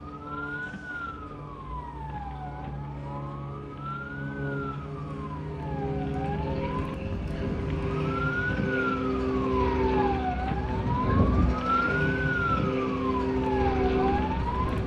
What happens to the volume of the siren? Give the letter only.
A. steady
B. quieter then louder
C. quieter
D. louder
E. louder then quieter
D.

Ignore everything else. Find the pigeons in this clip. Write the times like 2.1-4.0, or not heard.
not heard.